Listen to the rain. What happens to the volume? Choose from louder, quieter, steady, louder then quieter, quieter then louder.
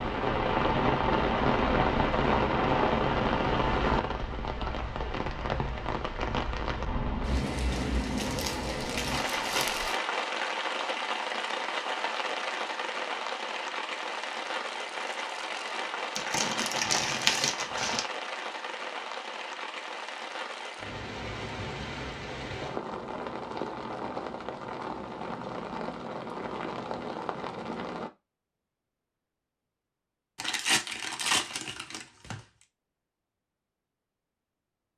quieter.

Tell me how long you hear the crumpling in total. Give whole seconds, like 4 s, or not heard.
6 s.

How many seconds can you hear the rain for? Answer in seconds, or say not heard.
28 s.